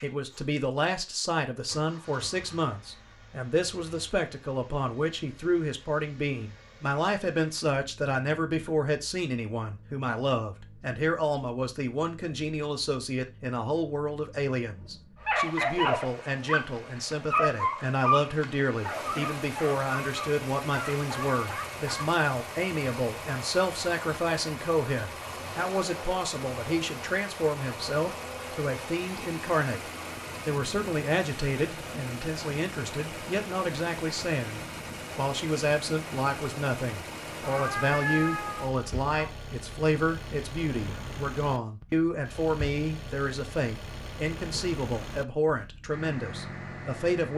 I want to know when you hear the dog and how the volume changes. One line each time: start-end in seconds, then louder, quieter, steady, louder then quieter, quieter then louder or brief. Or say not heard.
15.2-22.1 quieter.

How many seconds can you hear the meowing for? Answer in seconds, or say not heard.
2 s.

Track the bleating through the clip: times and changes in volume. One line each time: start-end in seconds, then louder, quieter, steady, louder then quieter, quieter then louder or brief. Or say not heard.
not heard.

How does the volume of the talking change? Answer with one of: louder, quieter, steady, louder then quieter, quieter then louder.
steady.